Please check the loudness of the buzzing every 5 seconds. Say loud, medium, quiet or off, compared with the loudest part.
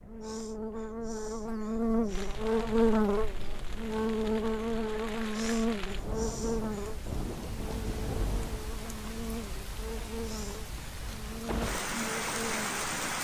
loud, medium, medium.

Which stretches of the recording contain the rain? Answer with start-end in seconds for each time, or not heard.
2.0-13.1.